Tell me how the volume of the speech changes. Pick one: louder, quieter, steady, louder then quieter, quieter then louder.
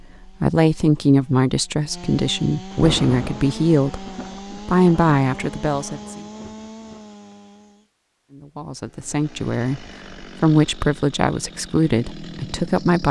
steady.